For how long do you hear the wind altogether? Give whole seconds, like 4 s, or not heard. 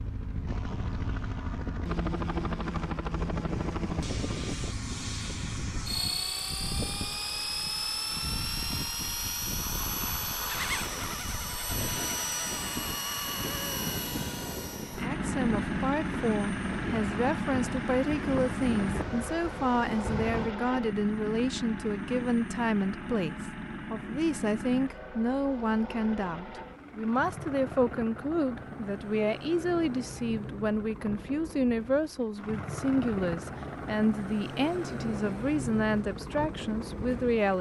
20 s.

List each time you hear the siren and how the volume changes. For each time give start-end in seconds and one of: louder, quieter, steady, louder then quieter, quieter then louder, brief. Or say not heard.
not heard.